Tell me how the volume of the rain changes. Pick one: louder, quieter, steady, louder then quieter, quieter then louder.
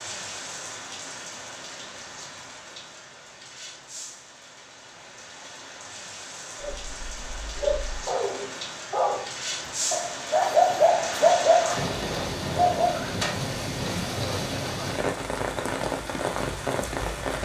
louder.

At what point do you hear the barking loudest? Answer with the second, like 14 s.
11 s.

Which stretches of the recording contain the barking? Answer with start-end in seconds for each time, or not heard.
6.6-13.1.